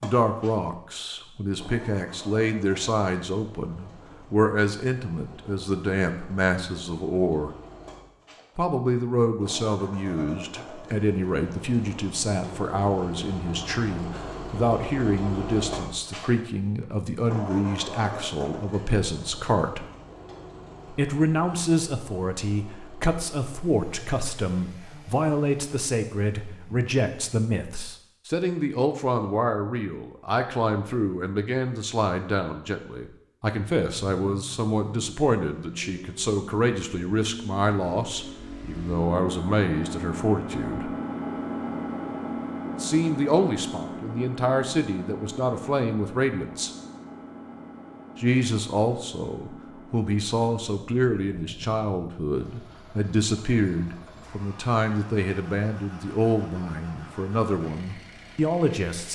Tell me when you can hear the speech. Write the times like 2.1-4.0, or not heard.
0.0-7.5, 8.6-19.9, 20.9-40.9, 42.8-46.7, 48.1-59.1.